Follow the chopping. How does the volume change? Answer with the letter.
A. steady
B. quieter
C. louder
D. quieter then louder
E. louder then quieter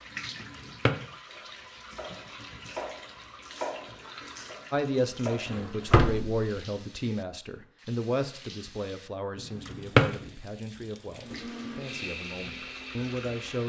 E.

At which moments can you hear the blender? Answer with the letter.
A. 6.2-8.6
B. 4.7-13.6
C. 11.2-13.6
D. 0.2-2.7
C.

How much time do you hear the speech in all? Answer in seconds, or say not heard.
9 s.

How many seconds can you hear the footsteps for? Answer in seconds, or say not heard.
not heard.